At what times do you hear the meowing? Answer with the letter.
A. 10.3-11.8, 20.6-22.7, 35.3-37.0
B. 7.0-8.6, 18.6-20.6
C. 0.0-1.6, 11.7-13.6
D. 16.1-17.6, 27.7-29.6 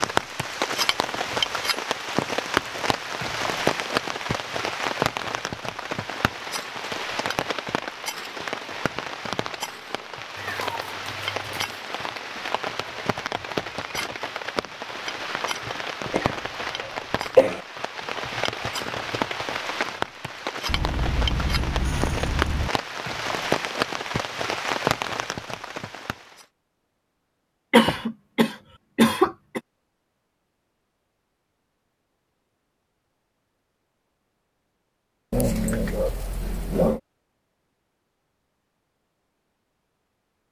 A.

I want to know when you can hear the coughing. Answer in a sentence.
You can hear the coughing from 16.1 to 17.6 s and from 27.7 to 29.6 s.